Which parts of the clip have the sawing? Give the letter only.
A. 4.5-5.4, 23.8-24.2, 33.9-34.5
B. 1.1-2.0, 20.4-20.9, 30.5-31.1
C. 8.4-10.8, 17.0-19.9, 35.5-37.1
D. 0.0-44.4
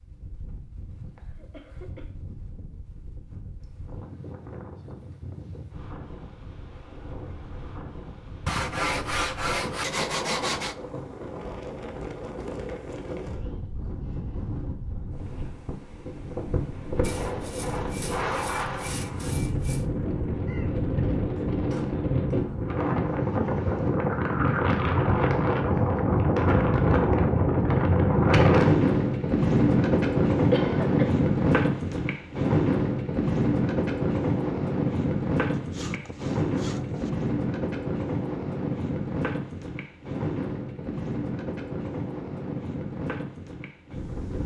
C.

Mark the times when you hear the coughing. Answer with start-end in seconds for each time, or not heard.
1.1-2.0, 20.4-20.9, 30.5-31.1.